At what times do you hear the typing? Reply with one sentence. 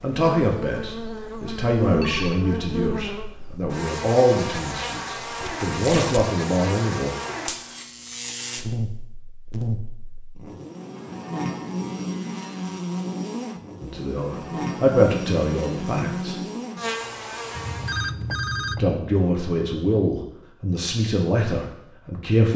The typing can't be heard in this clip.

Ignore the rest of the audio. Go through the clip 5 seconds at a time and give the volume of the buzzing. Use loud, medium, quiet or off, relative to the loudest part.
loud, loud, loud, loud, off.